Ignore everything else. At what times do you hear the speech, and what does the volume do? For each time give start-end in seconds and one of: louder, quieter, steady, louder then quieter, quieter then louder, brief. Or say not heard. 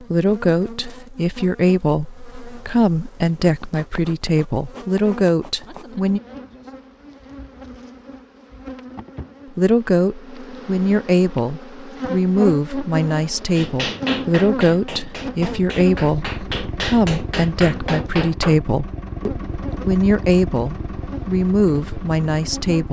0.0-6.2 steady
9.6-22.8 steady.